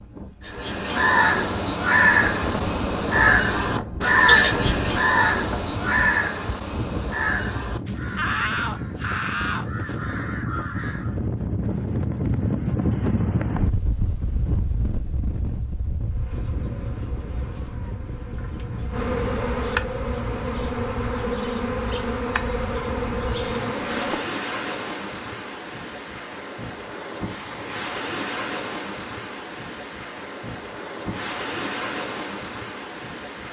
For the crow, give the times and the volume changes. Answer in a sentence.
You can hear the crow from 0.5 to 11.2 s, getting quieter.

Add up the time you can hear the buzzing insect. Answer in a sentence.
You can hear the buzzing insect for 8 seconds altogether.